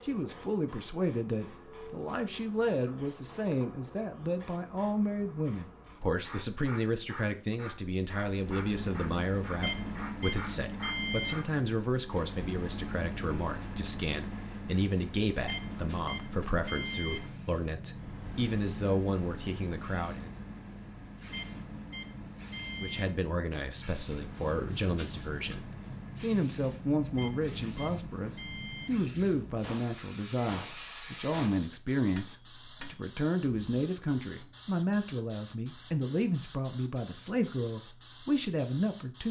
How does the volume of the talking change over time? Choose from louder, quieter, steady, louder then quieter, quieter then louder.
steady.